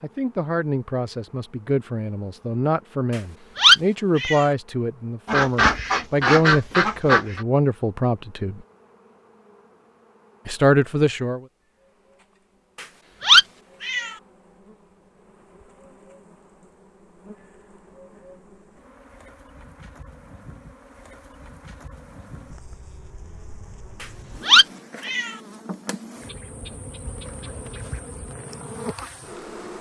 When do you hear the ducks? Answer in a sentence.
The ducks can be heard from 5.2 to 7.5 s and from 26.2 to 28.1 s.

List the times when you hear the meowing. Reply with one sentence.
The meowing can be heard from 3.5 to 4.5 s, from 12.8 to 14.1 s and from 24.0 to 25.4 s.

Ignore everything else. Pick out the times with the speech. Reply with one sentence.
You can hear the speech from 0.0 to 8.6 s and from 10.4 to 11.4 s.